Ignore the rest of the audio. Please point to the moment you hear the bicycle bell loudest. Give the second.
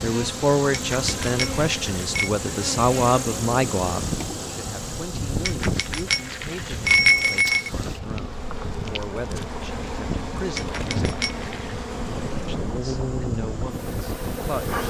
7 s.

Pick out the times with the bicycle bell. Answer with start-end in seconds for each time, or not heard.
0.7-2.3, 5.5-7.7, 10.6-11.8.